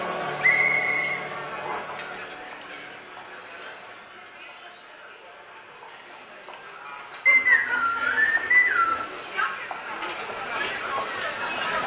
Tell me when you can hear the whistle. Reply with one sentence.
You can hear the whistle from 0.4 to 1.8 s and from 7.2 to 9.1 s.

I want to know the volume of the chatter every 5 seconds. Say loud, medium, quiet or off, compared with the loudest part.
medium, medium, loud.